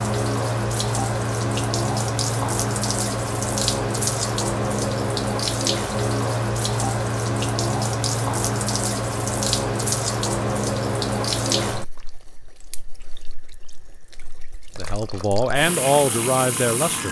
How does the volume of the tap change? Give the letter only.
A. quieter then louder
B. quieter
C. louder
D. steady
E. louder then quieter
B.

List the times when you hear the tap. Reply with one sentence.
You can hear the tap from 0.0 to 17.0 s.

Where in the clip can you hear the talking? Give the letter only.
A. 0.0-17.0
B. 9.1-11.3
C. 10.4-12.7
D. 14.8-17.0
D.